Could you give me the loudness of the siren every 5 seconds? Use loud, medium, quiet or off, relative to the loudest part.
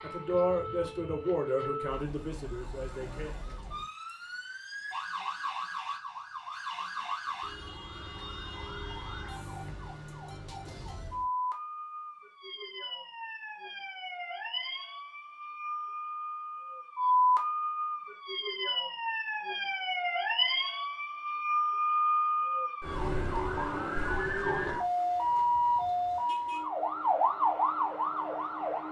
quiet, medium, medium, loud, loud, loud.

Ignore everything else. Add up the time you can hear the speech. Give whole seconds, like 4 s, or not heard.
3 s.